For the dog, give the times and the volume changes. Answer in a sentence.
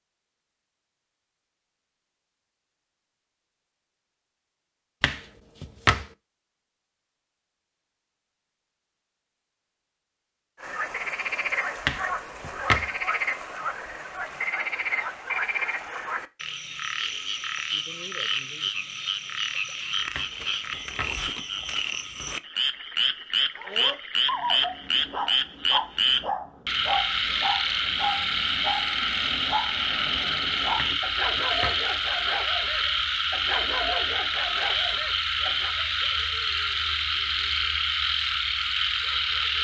The dog can be heard from 23.6 to 35.8 s, at a steady volume.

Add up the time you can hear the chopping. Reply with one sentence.
The chopping can be heard for 4 seconds in total.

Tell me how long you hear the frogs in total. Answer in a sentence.
The frogs can be heard for 29 seconds in total.